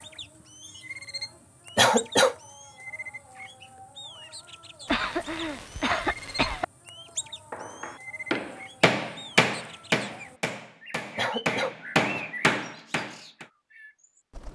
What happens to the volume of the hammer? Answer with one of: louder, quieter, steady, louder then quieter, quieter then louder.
quieter then louder.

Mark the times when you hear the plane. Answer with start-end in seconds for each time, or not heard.
not heard.